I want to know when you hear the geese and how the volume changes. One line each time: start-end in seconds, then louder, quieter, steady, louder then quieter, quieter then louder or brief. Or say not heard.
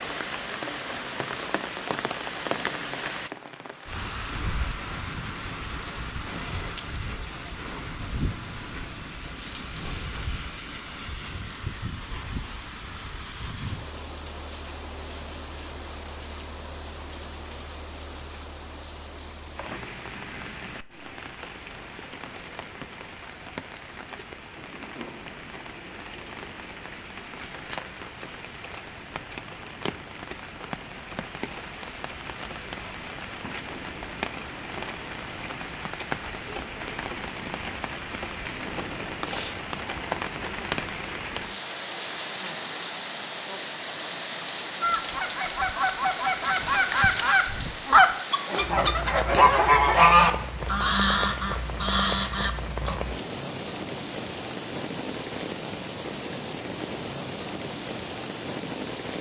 44.8-53.0 louder then quieter.